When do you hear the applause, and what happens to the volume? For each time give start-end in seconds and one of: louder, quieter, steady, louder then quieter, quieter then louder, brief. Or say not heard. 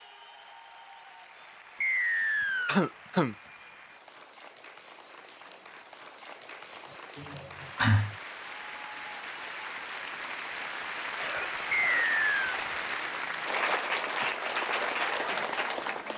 0.0-16.1 louder.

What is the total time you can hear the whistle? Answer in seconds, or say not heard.
2 s.